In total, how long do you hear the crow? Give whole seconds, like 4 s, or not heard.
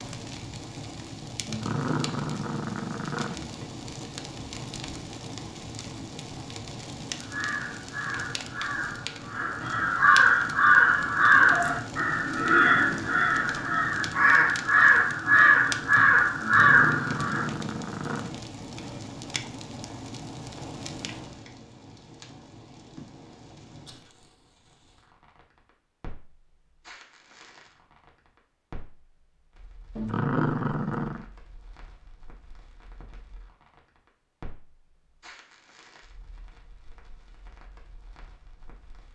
10 s.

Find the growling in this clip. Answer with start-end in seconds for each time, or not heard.
1.4-3.5, 16.4-18.4, 29.9-31.2.